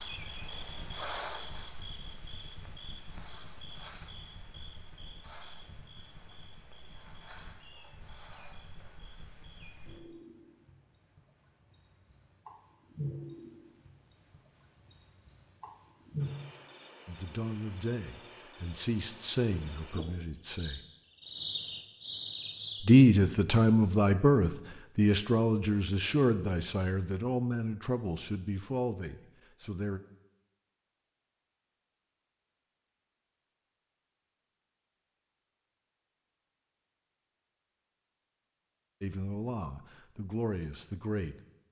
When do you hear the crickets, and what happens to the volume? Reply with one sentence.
You can hear the crickets from 0.0 to 23.0 s, getting quieter then louder.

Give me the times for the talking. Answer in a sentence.
You can hear the talking from 17.1 to 20.8 s, from 22.8 to 30.0 s and from 39.0 to 41.4 s.